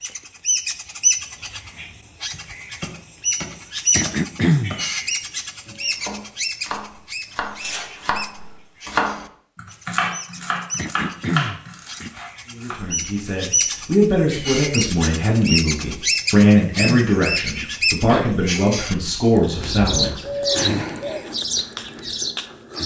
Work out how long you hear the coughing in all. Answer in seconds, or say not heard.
4 s.